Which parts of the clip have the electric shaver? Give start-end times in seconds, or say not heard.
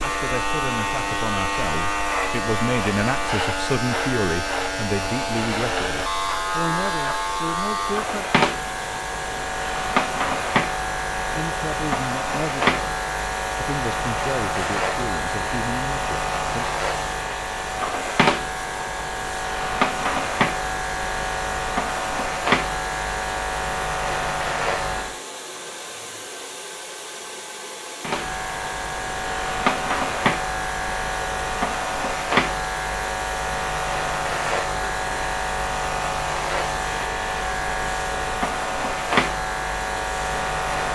0.0-25.2, 28.0-40.9.